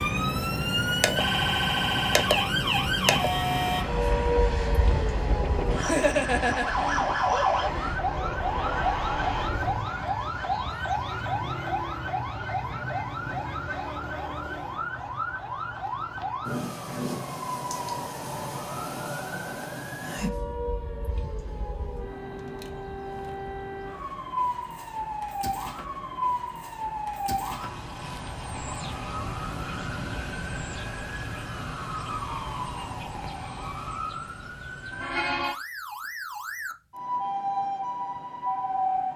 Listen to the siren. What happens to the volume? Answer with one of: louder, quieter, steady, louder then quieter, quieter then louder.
quieter.